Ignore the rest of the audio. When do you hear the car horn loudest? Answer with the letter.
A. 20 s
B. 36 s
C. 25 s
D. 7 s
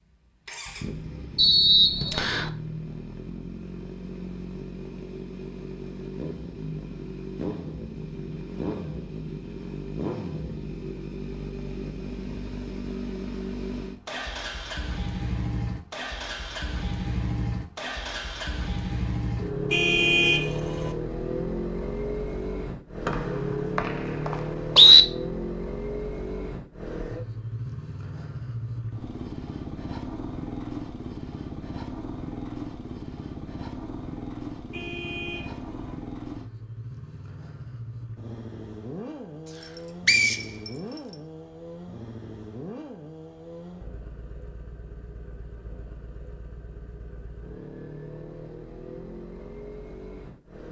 A.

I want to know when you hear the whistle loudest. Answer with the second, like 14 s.
25 s.